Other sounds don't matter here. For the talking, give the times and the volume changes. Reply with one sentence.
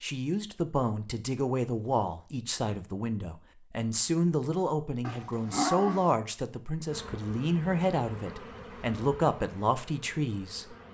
You can hear the talking from 0.0 to 10.8 s, at a steady volume.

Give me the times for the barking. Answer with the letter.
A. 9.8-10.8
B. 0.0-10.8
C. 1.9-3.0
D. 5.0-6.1
D.